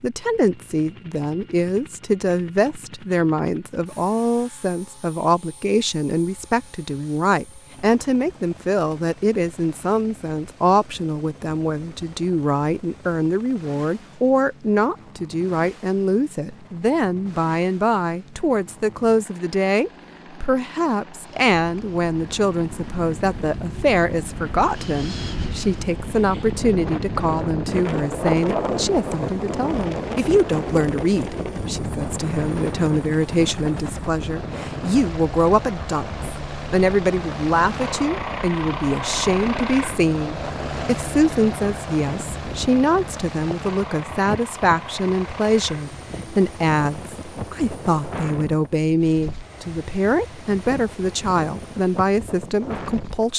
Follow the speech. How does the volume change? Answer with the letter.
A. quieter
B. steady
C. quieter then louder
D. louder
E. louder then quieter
B.